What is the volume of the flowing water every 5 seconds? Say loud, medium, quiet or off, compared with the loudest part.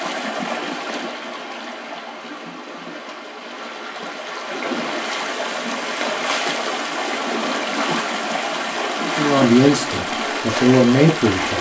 medium, loud, loud.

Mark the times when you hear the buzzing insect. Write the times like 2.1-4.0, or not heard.
not heard.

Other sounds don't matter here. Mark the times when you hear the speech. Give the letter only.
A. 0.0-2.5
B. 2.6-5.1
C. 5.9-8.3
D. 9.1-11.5
D.